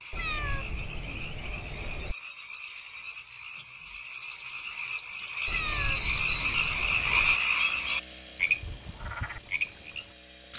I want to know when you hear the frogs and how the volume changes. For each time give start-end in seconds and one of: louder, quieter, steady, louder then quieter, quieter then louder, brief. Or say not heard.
0.0-10.5 louder then quieter.